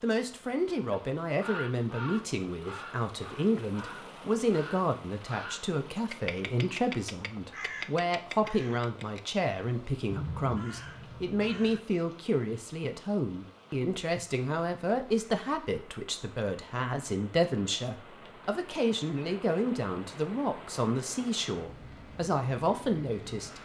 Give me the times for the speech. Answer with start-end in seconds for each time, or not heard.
0.0-23.6.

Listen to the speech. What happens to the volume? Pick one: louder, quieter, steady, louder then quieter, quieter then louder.
steady.